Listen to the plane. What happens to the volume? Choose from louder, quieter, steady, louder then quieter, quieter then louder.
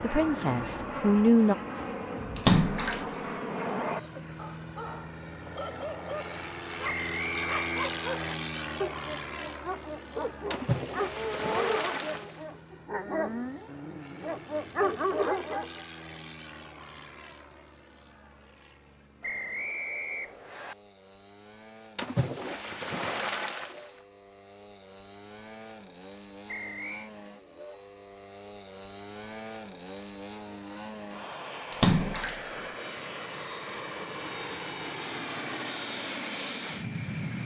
quieter then louder.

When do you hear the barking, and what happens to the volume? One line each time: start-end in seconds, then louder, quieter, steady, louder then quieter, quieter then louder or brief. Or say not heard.
3.6-15.8 louder.